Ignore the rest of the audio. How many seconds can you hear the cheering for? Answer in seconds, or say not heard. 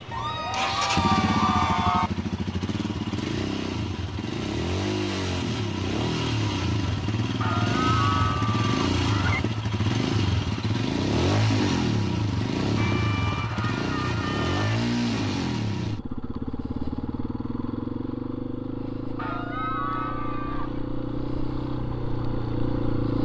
8 s.